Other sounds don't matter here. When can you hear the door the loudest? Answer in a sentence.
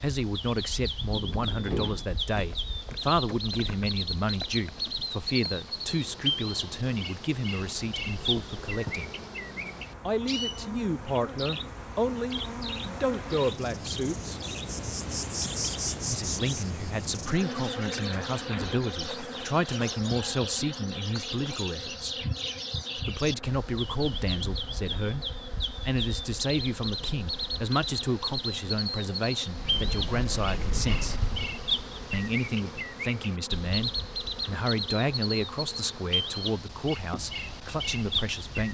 The volume of the door peaks at 2 seconds.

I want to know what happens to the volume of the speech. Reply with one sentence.
The loudness of the speech stays about the same.